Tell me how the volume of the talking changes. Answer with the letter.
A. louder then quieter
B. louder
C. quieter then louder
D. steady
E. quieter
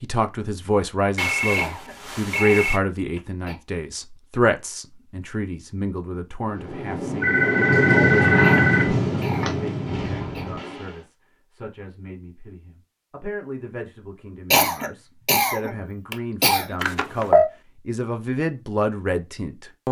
C.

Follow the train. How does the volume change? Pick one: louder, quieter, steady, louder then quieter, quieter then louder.
louder then quieter.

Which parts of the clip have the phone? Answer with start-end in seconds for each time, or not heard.
1.1-2.8, 7.2-9.6, 16.8-17.5.